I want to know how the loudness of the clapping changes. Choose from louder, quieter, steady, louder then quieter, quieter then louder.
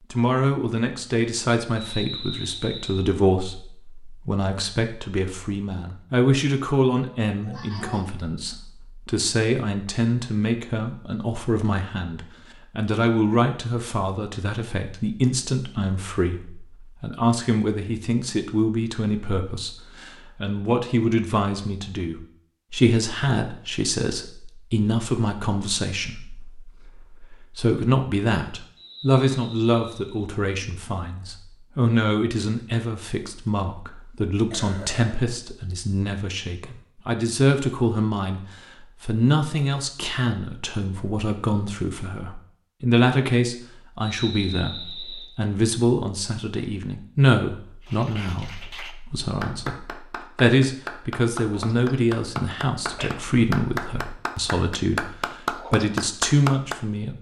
louder.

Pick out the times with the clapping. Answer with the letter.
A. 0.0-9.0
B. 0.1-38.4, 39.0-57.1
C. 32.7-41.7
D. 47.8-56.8
D.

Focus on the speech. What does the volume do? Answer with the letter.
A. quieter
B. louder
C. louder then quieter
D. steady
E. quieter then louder
D.